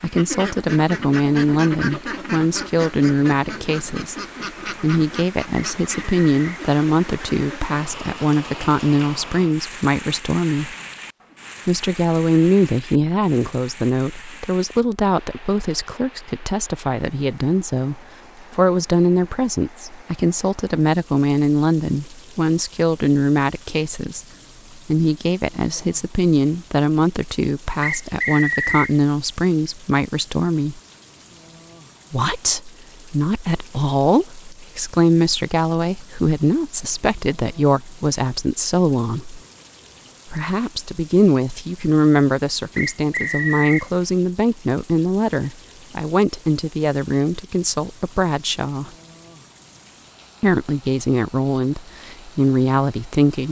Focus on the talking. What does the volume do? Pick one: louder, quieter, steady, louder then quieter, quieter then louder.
steady.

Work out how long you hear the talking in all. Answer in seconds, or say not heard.
49 s.